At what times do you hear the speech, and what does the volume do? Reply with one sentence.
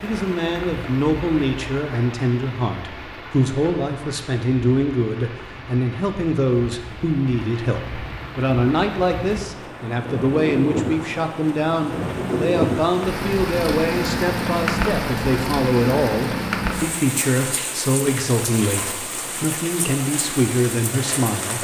You can hear the speech from 0.0 to 21.5 s, at a steady volume.